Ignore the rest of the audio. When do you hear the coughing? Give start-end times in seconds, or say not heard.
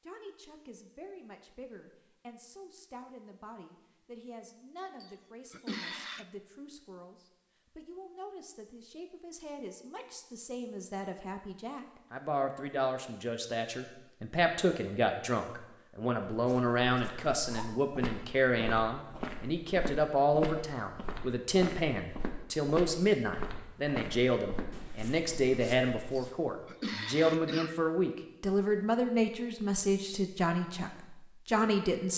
5.0-6.2, 26.1-27.8.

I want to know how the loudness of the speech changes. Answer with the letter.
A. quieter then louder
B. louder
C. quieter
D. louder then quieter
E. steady
B.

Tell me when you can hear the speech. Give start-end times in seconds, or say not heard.
0.0-32.1.